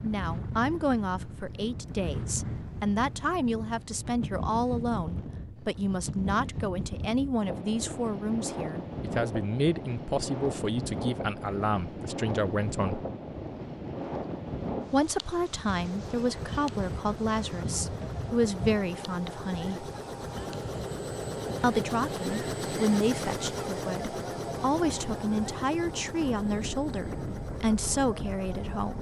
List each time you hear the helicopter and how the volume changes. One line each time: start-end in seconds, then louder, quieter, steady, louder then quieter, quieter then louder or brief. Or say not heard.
15.7-28.9 louder then quieter.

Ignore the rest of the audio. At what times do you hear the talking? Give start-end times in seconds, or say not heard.
0.0-13.0, 14.9-19.9, 21.6-28.9.